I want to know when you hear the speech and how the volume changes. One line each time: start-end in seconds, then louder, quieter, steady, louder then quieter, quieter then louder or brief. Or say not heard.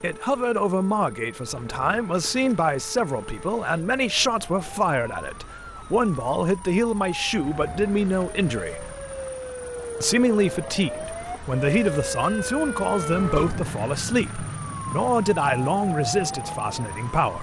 0.0-8.9 steady
10.0-17.3 steady.